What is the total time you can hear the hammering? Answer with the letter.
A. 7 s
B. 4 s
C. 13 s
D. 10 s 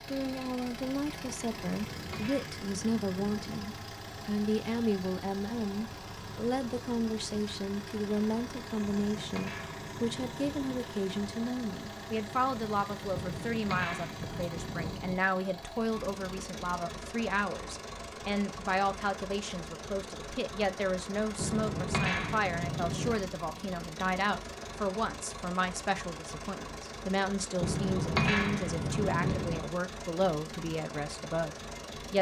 D.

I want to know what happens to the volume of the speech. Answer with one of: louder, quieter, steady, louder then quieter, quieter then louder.
steady.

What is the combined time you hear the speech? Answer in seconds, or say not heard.
32 s.